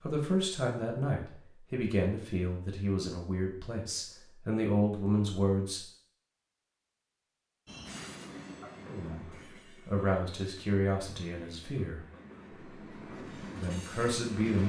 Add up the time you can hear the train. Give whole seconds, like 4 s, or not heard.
7 s.